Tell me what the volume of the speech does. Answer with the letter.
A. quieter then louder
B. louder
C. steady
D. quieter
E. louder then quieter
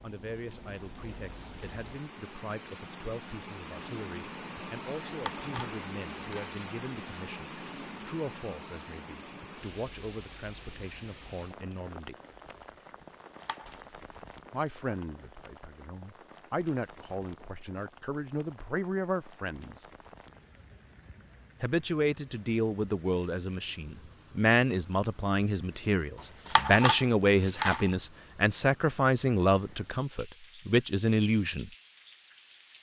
B.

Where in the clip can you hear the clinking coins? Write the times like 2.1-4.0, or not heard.
5.2-6.5, 13.4-13.8, 26.4-27.9.